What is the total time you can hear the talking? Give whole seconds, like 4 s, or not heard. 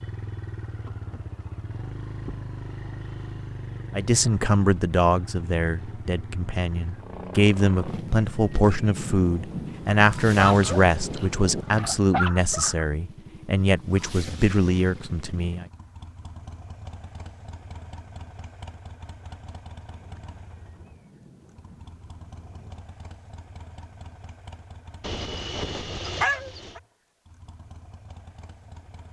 12 s.